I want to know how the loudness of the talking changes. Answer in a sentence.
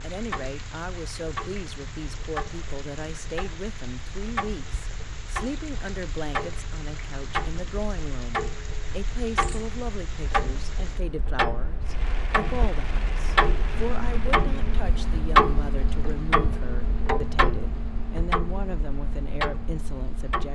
The loudness of the talking stays about the same.